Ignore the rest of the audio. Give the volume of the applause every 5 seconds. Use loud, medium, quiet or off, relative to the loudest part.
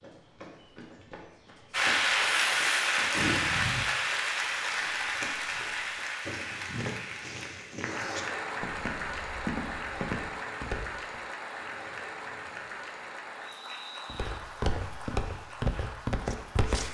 loud, medium, quiet, quiet.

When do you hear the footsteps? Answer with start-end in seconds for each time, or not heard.
0.0-11.2, 14.1-16.8.